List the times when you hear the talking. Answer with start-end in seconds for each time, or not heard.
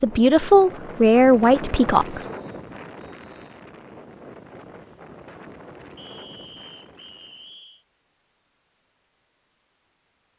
0.0-2.2.